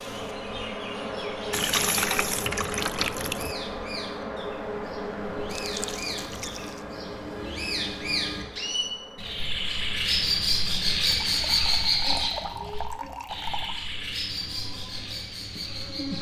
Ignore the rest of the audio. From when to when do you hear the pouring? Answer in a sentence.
You can hear the pouring from 1.5 to 3.5 s, from 5.5 to 6.8 s and from 11.1 to 13.8 s.